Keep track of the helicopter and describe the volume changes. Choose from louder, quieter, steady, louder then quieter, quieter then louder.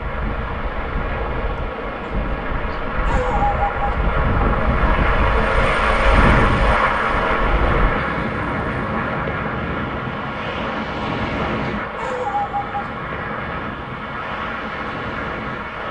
louder then quieter.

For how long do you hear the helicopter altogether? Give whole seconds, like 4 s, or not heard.
16 s.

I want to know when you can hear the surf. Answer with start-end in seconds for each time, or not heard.
0.0-15.8.